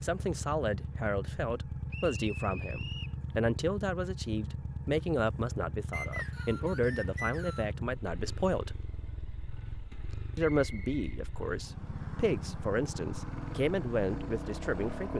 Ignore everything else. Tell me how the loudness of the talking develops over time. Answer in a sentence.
The volume of the talking stays about the same.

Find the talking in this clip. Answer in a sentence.
You can hear the talking from 0.0 to 8.8 s and from 10.3 to 15.1 s.